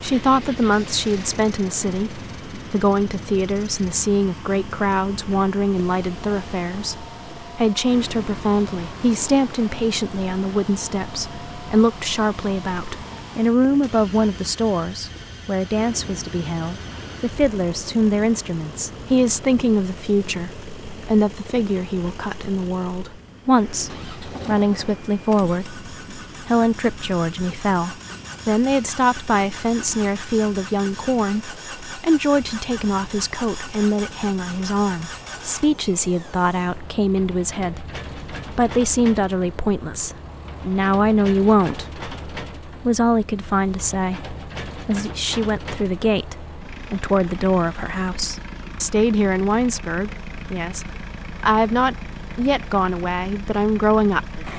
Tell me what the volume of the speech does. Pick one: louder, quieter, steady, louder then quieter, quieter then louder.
steady.